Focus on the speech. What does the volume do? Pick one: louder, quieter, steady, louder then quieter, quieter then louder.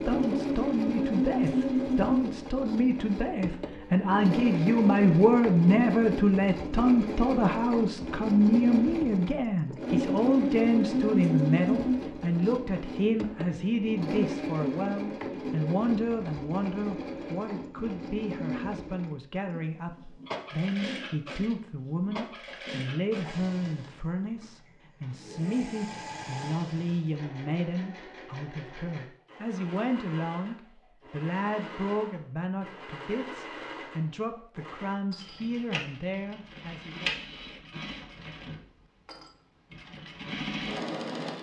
quieter.